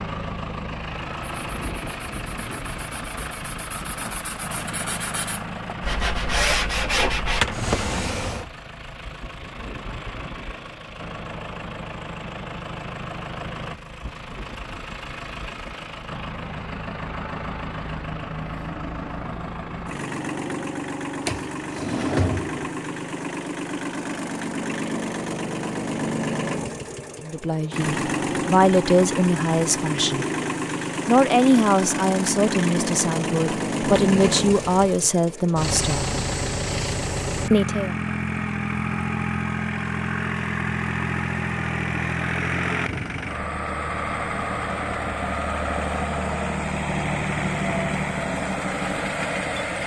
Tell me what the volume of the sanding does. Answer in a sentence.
The loudness of the sanding goes up.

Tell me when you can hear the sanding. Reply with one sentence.
The sanding can be heard from 1.2 to 7.5 s.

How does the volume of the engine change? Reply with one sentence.
The volume of the engine goes up.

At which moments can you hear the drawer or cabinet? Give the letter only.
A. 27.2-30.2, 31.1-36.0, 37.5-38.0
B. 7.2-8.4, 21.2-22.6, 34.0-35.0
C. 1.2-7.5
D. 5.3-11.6
B.